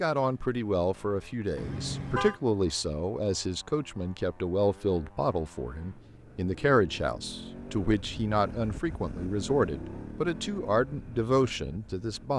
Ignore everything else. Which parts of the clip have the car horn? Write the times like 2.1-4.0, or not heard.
1.6-2.4.